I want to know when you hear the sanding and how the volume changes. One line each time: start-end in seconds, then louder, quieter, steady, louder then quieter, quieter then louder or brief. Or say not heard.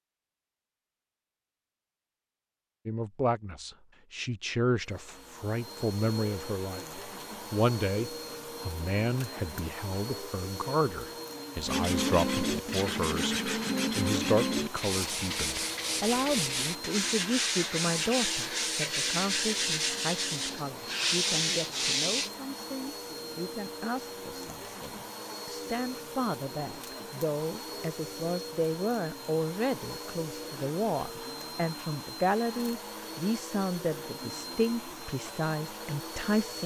11.7-22.3 steady.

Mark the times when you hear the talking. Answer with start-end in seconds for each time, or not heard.
2.9-36.6.